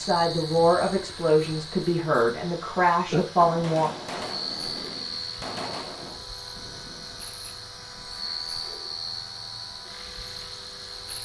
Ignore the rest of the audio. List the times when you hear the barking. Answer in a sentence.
The barking can't be heard in this clip.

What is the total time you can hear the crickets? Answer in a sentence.
You can hear the crickets for 11 seconds altogether.